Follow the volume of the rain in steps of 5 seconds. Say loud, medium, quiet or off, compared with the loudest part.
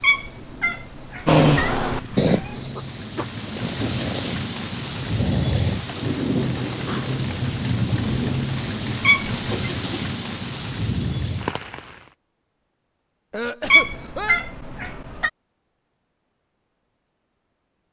medium, loud, loud, off.